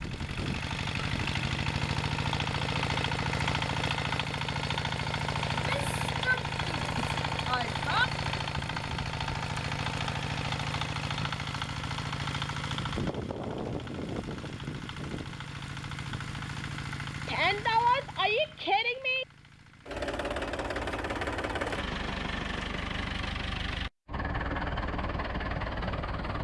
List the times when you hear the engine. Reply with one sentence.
The engine can be heard from 0.0 to 26.3 s.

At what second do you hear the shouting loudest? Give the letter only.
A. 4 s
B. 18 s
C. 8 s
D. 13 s
B.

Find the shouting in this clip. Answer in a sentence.
You can hear the shouting from 5.5 to 8.1 s and from 17.2 to 19.2 s.